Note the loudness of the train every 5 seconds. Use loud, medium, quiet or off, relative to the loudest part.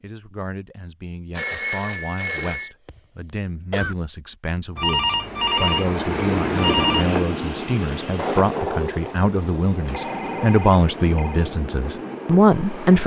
off, loud, medium.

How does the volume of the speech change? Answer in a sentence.
The loudness of the speech goes up.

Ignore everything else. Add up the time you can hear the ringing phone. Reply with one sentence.
You can hear the ringing phone for 5 seconds altogether.